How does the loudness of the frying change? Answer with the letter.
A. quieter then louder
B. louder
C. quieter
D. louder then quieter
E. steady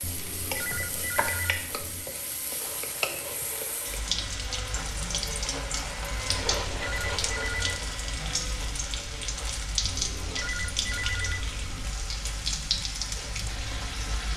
E.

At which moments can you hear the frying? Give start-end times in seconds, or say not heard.
0.0-14.3.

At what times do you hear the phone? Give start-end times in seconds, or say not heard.
0.0-2.0, 6.2-7.8, 9.8-11.8.